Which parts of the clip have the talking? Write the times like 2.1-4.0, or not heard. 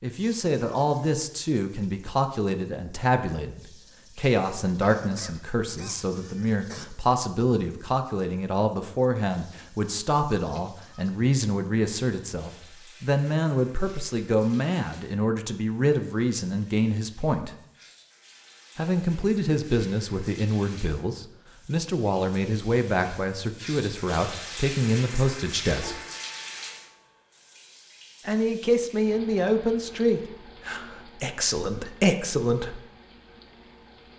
0.0-17.5, 18.8-25.9, 28.2-32.8.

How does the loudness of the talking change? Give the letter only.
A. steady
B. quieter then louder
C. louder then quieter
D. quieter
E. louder
A.